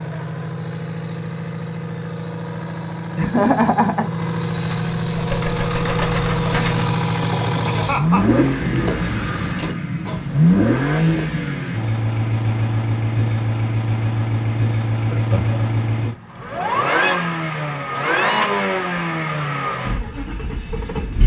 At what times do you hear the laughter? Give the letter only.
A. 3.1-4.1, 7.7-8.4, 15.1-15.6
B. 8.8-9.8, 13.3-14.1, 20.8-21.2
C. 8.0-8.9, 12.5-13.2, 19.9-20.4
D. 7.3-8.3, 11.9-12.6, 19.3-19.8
A.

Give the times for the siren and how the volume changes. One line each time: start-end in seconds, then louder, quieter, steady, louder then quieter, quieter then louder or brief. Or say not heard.
not heard.